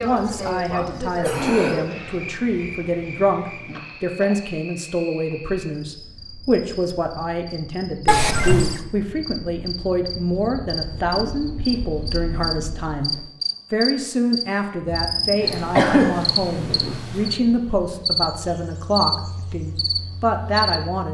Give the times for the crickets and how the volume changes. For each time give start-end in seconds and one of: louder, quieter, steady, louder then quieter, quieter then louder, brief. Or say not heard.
0.0-21.0 quieter then louder.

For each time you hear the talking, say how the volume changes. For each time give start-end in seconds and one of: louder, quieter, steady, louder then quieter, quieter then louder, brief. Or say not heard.
0.0-21.0 steady.